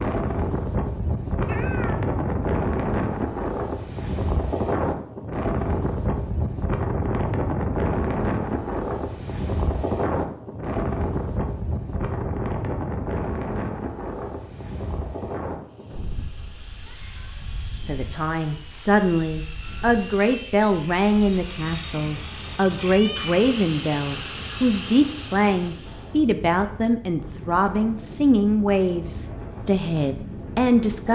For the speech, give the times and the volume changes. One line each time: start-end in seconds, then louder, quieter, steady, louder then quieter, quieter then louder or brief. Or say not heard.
17.9-31.1 steady.